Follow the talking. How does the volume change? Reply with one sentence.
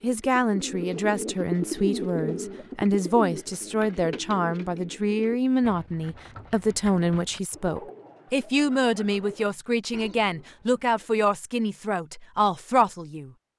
The volume of the talking stays about the same.